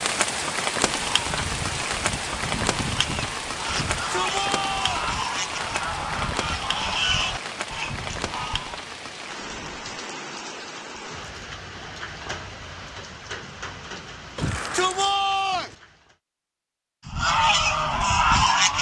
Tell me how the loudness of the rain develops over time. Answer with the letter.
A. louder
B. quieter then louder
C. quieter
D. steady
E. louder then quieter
C.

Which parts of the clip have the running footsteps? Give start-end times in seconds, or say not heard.
not heard.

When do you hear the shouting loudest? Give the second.
15 s.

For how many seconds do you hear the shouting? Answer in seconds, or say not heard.
3 s.